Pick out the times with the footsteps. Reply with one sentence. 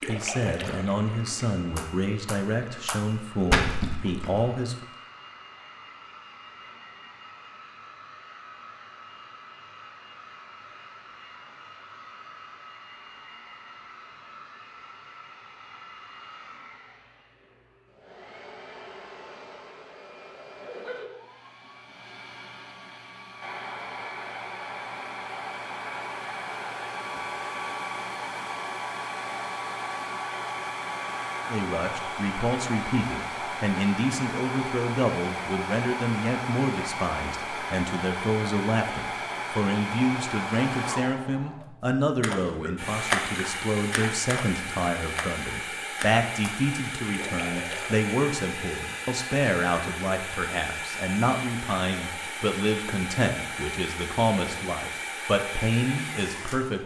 The footsteps can't be heard in this clip.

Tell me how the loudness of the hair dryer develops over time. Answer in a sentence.
The loudness of the hair dryer goes up.